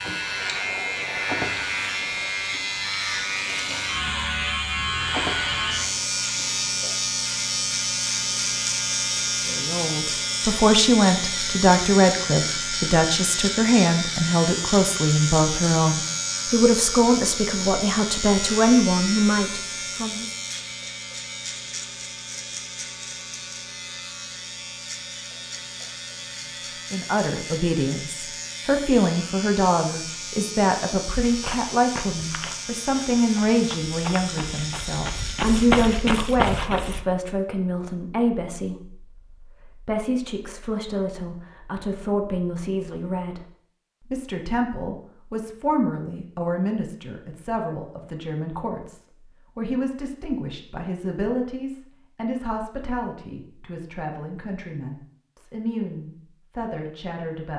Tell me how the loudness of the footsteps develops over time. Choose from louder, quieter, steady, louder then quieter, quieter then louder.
quieter then louder.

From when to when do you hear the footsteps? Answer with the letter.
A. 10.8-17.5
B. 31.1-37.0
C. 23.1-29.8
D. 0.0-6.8
B.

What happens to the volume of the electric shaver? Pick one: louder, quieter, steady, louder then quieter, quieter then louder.
quieter.